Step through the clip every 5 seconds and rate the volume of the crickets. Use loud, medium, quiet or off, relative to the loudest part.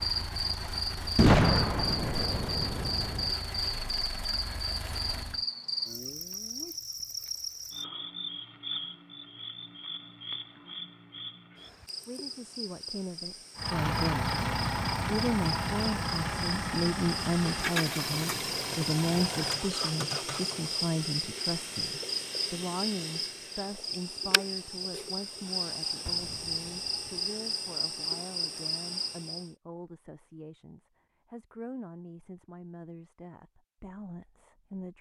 loud, loud, medium, loud, loud, loud, off.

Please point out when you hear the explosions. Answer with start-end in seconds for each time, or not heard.
1.1-3.3, 26.1-27.1.